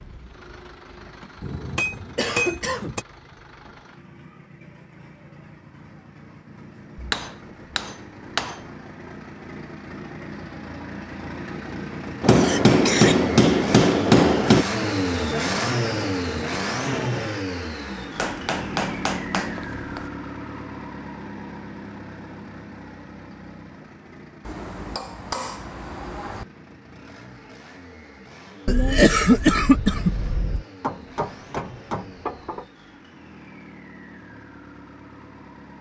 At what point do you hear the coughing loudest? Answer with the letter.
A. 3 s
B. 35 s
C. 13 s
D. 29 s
D.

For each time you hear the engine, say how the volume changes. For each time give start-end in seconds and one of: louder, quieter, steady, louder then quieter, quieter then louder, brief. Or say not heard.
0.0-35.7 louder then quieter.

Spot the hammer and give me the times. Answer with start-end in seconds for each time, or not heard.
1.4-3.0, 7.0-8.6, 12.2-14.7, 18.1-20.1, 24.4-26.4, 30.8-32.6.